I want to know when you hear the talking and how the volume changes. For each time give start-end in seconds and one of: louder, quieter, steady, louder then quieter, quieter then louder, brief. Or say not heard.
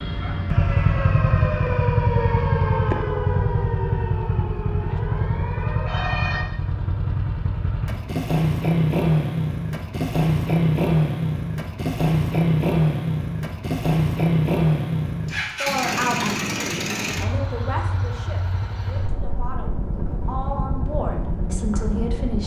15.6-22.4 quieter then louder.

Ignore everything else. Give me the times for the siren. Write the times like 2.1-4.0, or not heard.
0.0-6.5.